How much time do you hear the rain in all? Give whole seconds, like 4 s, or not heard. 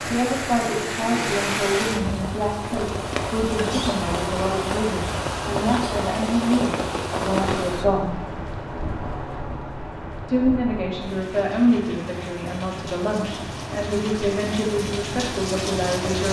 16 s.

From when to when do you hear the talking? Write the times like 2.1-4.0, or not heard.
0.0-8.2, 10.2-16.2.